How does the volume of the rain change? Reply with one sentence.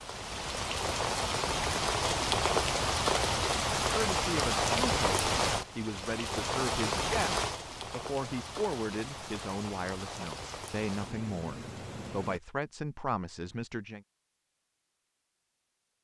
The volume of the rain goes down.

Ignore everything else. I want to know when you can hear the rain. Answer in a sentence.
The rain can be heard from 0.0 to 12.4 s.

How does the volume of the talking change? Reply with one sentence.
The volume of the talking stays about the same.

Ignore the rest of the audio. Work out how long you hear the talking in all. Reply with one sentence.
The talking can be heard for 10 seconds in total.